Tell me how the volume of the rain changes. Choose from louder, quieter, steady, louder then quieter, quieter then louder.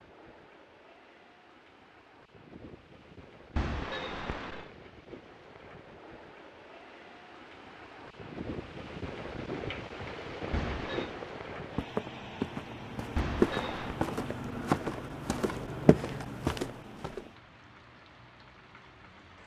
louder then quieter.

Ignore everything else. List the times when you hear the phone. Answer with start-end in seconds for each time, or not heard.
3.5-4.7, 10.5-11.2, 13.2-14.0.